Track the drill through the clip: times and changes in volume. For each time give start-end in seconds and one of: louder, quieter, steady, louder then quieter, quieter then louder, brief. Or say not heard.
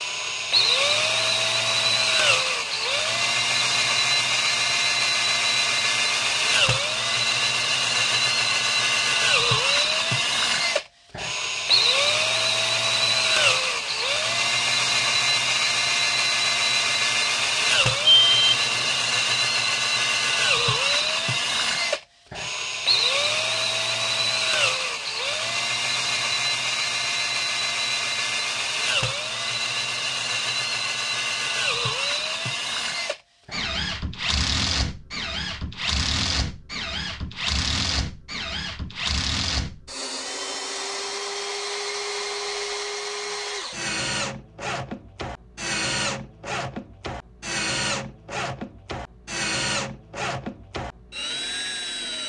0.0-52.2 quieter.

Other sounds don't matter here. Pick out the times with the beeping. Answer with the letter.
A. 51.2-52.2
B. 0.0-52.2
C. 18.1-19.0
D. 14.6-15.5
C.